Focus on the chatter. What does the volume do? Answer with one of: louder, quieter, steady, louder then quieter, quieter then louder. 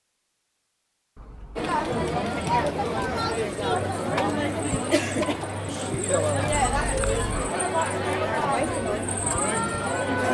steady.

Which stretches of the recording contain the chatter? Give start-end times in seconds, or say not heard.
1.6-10.3.